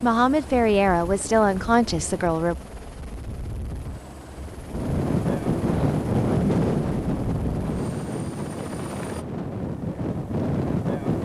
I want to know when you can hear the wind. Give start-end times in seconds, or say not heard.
4.6-11.2.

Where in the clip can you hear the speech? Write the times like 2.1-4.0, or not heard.
0.0-2.5.